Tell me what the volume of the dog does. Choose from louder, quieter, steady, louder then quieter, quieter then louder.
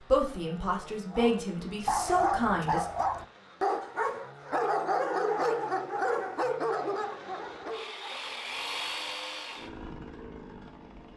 quieter.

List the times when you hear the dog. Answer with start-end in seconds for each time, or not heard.
1.1-8.5.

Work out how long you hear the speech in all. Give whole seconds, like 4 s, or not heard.
3 s.